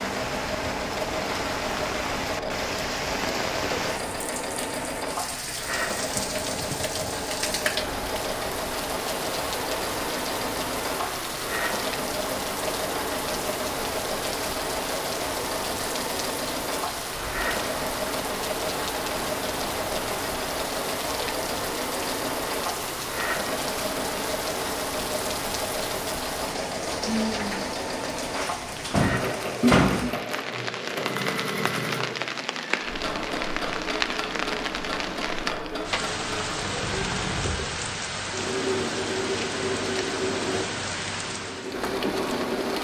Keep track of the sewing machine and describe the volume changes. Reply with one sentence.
The loudness of the sewing machine stays about the same.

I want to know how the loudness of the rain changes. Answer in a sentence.
The loudness of the rain stays about the same.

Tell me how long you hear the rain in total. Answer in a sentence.
You can hear the rain for 43 seconds altogether.